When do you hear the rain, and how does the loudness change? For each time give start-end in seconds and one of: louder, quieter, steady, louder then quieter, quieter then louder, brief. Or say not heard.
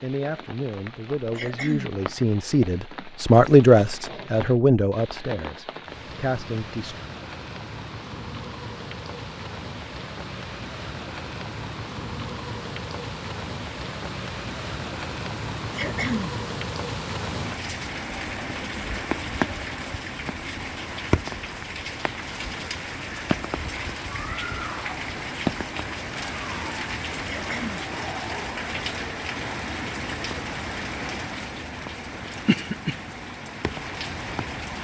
0.0-34.8 louder.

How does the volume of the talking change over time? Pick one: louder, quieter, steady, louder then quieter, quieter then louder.
louder then quieter.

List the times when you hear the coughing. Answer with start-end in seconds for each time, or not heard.
1.3-1.9, 15.7-16.4, 27.2-27.9.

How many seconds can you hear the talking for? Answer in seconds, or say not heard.
7 s.